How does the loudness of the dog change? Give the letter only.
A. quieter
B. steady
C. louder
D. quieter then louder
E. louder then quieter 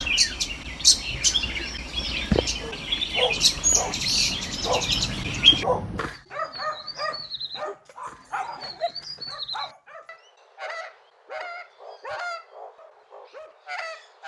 A.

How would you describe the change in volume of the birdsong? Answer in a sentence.
The loudness of the birdsong goes down.